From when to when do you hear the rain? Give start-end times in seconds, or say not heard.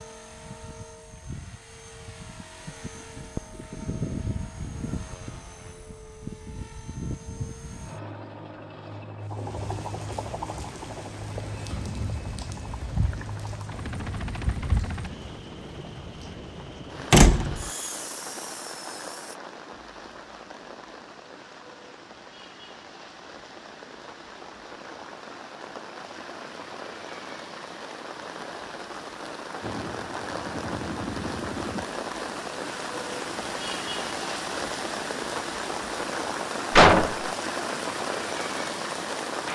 9.2-39.5.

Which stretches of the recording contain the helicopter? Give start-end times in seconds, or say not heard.
0.0-19.4, 29.6-31.9.